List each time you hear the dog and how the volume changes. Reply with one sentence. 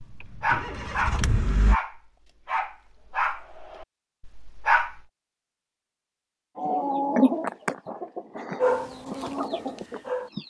The dog can be heard from 0.0 to 5.0 s, getting quieter; and briefly from 8.6 to 10.3 s.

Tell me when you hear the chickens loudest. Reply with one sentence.
The loudest moment of the chickens is at 7 seconds.